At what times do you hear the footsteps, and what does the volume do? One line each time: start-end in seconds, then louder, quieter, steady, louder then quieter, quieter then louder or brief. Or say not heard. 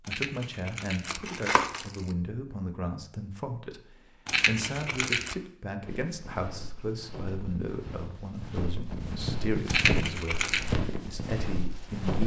5.8-12.2 louder.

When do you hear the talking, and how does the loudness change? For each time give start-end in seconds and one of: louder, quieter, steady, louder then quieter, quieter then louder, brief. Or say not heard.
0.0-12.2 steady.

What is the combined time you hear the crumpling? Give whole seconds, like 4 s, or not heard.
4 s.